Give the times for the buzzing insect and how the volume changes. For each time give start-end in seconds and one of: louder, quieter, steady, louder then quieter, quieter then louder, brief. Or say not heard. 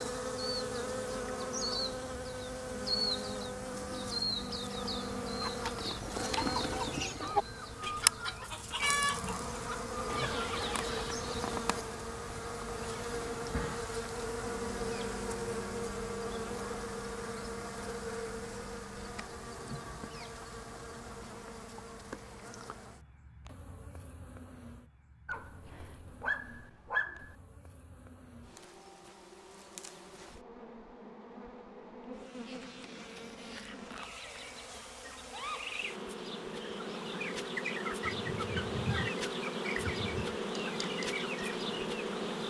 0.0-42.4 quieter then louder.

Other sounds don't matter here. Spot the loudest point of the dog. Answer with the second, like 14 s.
27 s.